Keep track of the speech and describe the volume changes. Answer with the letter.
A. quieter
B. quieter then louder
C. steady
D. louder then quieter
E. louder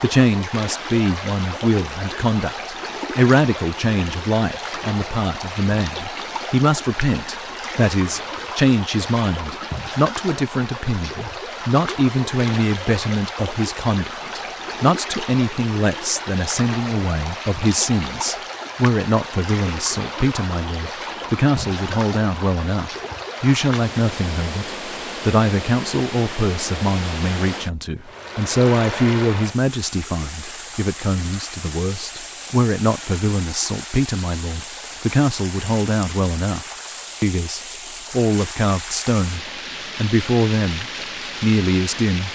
C.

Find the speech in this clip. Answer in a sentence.
The speech can be heard from 0.0 to 42.3 s.